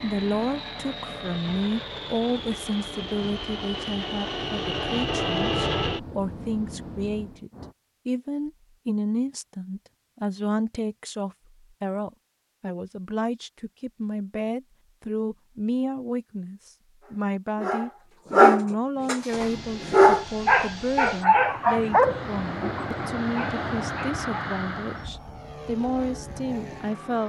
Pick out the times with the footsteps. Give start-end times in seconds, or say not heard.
not heard.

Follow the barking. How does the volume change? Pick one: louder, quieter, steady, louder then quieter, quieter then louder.
quieter.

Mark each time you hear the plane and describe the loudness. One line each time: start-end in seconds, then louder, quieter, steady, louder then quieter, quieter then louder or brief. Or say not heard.
0.0-7.8 louder then quieter
19.2-27.2 louder then quieter.